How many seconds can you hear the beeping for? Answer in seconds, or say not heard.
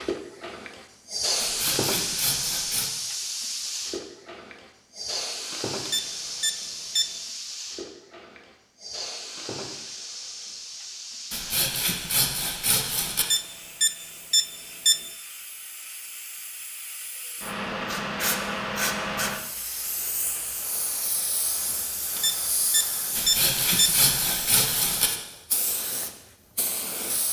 5 s.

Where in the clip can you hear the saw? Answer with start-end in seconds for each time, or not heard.
1.4-2.9, 11.3-13.2, 23.1-25.1.